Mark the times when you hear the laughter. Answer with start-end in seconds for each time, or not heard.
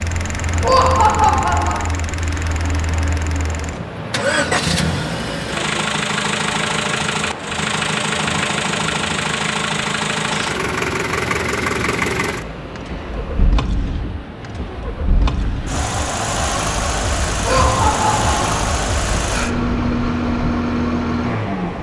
0.6-1.9, 17.4-18.4.